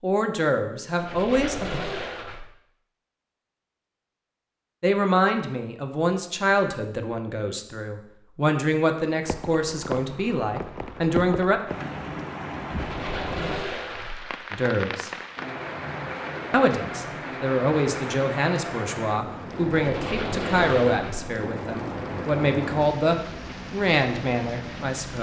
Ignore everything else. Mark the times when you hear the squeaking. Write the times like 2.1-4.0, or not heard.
0.9-2.5, 12.7-14.3, 19.8-21.3.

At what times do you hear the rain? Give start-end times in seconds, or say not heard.
9.2-25.1.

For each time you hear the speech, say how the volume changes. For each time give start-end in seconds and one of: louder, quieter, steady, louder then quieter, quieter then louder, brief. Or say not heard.
0.0-1.8 brief
4.8-11.6 steady
14.5-15.1 brief
16.5-25.1 steady.